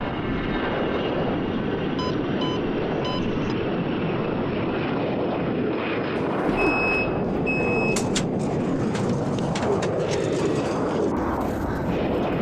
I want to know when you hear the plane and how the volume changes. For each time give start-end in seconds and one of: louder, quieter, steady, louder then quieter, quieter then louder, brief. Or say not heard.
0.0-12.3 steady.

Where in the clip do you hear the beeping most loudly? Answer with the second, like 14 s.
7 s.